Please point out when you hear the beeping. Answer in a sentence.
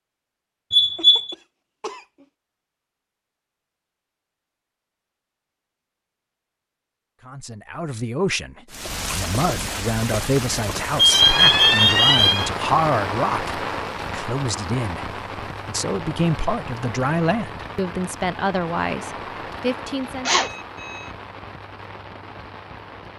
The beeping can be heard from 0.7 to 1.4 s, from 10.9 to 12.5 s and from 20.2 to 21.1 s.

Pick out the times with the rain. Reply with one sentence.
The rain can be heard from 8.7 to 23.1 s.